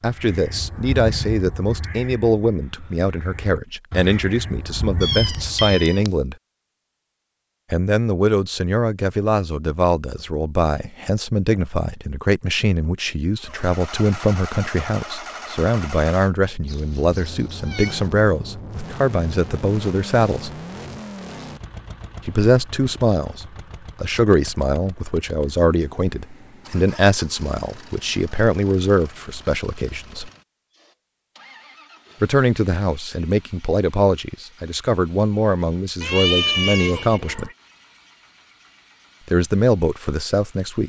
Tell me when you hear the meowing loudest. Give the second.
36 s.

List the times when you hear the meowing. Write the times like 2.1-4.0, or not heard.
5.0-6.1, 16.6-18.1, 36.0-37.5.